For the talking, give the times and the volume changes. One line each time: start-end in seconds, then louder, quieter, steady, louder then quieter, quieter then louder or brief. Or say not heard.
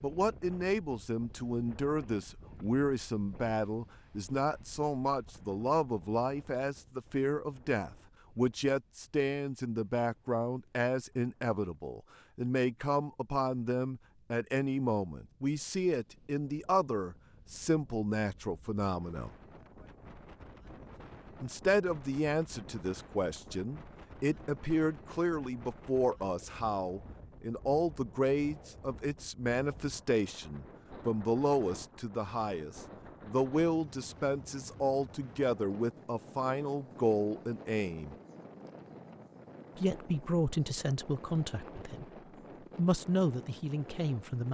0.0-19.4 steady
21.4-38.1 steady
39.8-42.0 brief
42.8-44.4 brief.